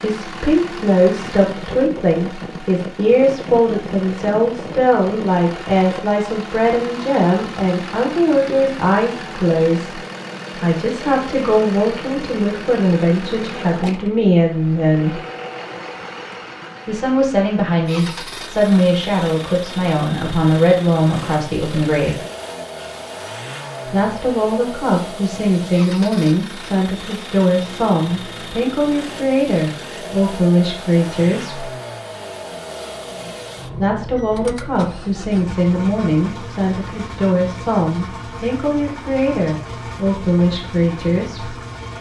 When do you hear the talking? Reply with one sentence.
You can hear the talking from 0.0 to 10.0 s, from 10.6 to 15.2 s, from 16.9 to 22.2 s, from 23.9 to 31.7 s and from 33.7 to 41.5 s.